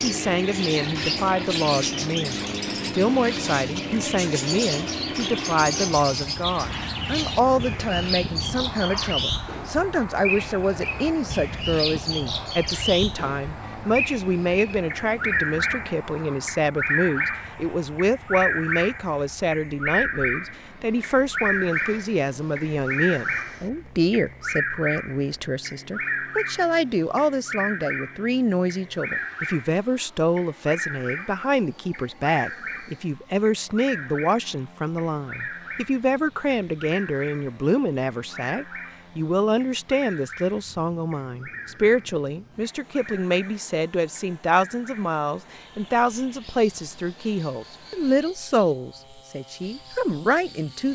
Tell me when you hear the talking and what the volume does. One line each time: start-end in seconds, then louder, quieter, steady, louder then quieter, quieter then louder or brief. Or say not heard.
0.0-50.8 steady.